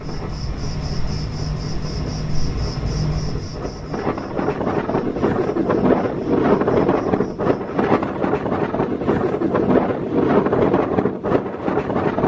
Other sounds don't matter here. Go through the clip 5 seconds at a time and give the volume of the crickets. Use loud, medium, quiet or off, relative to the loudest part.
loud, quiet, off.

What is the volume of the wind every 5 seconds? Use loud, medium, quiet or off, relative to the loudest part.
medium, loud, loud.